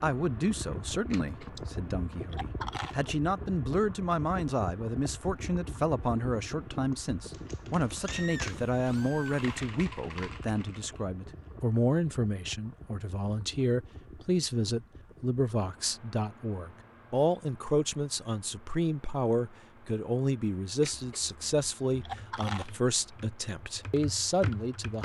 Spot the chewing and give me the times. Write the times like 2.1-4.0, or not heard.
1.1-3.0, 20.8-22.8.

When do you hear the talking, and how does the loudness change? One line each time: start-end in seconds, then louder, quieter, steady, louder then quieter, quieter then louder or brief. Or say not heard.
0.0-25.0 steady.